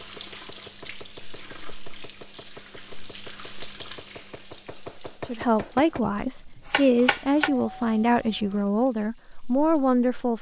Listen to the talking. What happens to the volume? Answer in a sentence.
The volume of the talking stays about the same.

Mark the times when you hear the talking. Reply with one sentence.
You can hear the talking from 5.2 to 10.3 s.